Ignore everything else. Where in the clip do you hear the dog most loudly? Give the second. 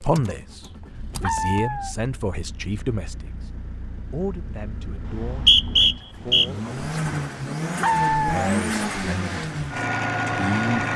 8 s.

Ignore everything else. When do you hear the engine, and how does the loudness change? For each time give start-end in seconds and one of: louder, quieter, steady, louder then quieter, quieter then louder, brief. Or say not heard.
0.0-10.9 louder.